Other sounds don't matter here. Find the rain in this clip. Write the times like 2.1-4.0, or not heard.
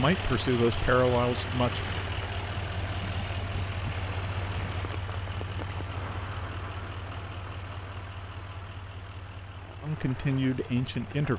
0.1-11.3.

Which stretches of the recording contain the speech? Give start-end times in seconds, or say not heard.
0.0-2.0, 9.8-11.3.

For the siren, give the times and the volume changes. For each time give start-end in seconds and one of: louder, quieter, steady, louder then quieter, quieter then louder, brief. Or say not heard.
not heard.